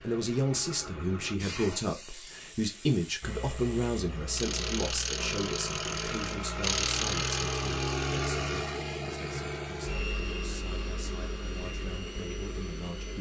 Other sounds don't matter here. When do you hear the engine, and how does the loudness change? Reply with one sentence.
The engine can be heard from 0.0 to 13.1 s, getting louder then quieter.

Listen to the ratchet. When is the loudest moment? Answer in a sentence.
The volume of the ratchet peaks at 7 seconds.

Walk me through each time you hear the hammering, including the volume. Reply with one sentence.
The hammering can't be heard in this clip.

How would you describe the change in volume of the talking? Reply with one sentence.
The loudness of the talking goes down.